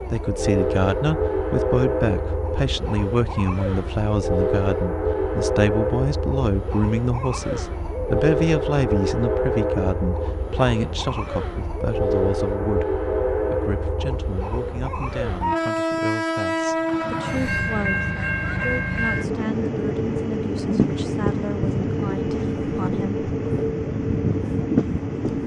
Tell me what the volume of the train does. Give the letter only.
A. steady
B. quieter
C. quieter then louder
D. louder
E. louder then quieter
A.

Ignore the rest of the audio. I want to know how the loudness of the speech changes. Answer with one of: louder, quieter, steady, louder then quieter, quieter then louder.
quieter.